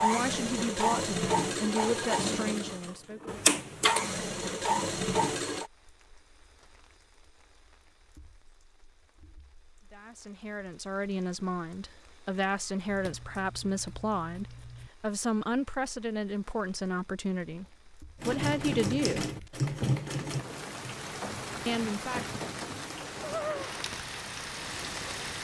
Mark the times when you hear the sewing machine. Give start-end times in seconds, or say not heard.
0.0-5.7, 18.2-25.3.